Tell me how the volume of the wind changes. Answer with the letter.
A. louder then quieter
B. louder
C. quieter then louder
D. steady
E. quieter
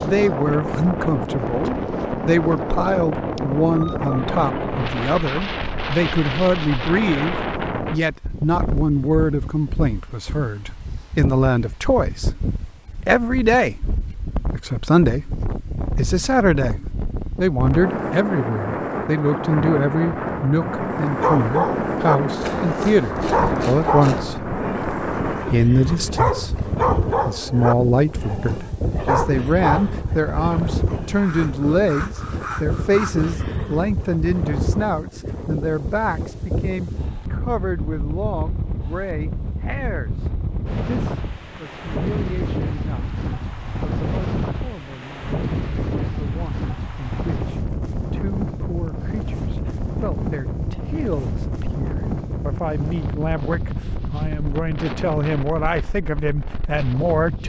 D.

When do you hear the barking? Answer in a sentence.
You can hear the barking from 21.1 to 31.4 s.